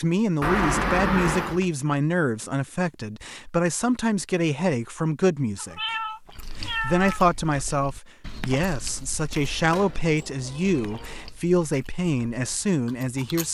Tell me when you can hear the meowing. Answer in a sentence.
You can hear the meowing from 0.4 to 1.6 s, from 5.5 to 7.2 s and from 9.3 to 11.3 s.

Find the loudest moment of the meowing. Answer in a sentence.
The loudest moment of the meowing is at 1 second.